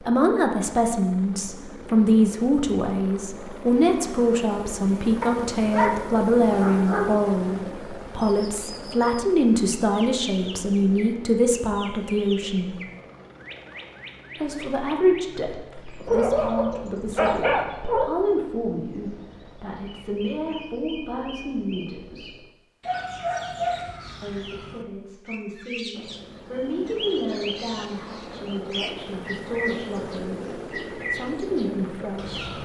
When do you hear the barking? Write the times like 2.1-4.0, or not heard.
5.2-7.2, 16.1-18.1, 22.9-24.4.